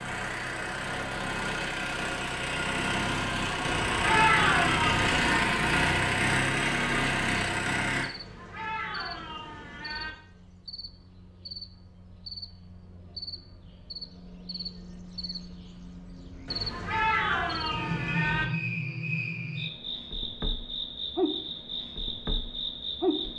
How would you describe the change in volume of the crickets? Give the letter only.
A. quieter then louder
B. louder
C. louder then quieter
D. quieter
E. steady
B.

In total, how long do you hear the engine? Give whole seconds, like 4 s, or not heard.
8 s.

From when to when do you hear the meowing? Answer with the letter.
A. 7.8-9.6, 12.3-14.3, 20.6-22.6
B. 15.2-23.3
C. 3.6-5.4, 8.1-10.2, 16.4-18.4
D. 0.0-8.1
C.